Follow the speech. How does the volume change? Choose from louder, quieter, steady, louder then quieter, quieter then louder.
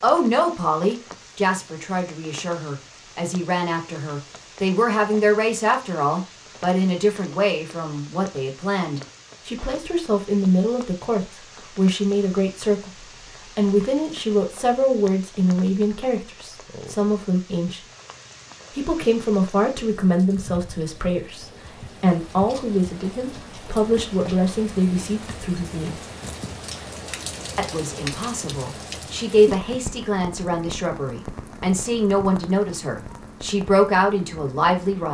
steady.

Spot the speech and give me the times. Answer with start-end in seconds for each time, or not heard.
0.0-17.9, 18.7-26.0, 27.6-35.0.